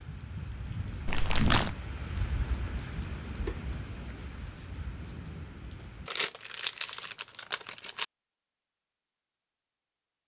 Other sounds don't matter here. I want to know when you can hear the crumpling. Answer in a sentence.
You can hear the crumpling from 1.1 to 1.8 s and from 6.0 to 8.1 s.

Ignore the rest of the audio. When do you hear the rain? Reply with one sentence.
You can hear the rain from 0.0 to 6.1 s.